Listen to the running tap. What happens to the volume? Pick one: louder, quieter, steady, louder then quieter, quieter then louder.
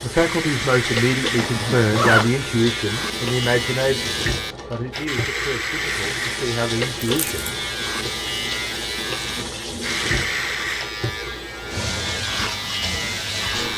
steady.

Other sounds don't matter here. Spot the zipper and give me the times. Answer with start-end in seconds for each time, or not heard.
1.4-2.3, 7.0-7.5.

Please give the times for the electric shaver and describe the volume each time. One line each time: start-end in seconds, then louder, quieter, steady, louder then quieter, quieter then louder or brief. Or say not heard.
0.0-13.7 steady.